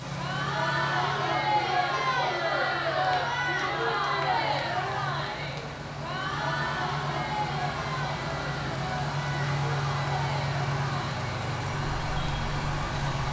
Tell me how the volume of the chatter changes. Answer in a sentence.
The loudness of the chatter goes down.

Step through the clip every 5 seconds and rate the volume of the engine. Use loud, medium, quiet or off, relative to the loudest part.
medium, loud, loud.